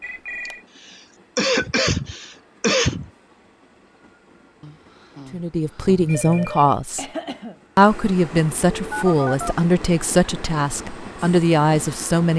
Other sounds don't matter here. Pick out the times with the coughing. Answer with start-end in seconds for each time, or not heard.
0.5-3.1, 7.0-7.5.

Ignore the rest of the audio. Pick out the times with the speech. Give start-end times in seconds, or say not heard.
5.3-7.0, 7.8-12.3.